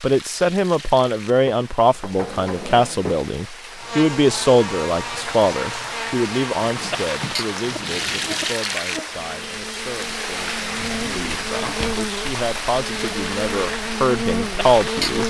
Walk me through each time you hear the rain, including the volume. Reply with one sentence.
The rain can be heard from 0.0 to 15.2 s, getting louder.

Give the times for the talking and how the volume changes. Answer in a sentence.
You can hear the talking from 0.0 to 15.2 s, getting quieter then louder.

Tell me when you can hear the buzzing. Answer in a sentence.
The buzzing can be heard from 3.7 to 15.2 s.